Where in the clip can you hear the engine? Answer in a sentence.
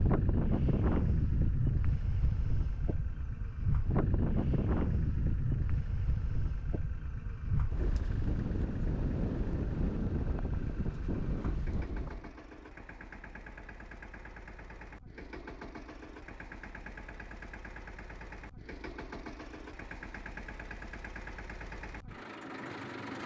You can hear the engine from 0.0 to 23.2 s.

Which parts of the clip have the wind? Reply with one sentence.
You can hear the wind from 0.0 to 12.3 s.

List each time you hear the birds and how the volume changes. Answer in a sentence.
The birds can't be heard in this clip.